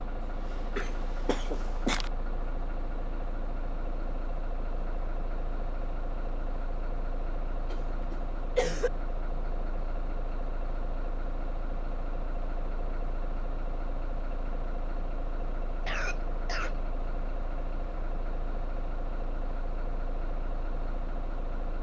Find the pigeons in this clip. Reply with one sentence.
You can't hear the pigeons here.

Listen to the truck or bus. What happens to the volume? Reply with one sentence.
The volume of the truck or bus stays about the same.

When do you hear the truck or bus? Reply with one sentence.
You can hear the truck or bus from 0.0 to 21.7 s.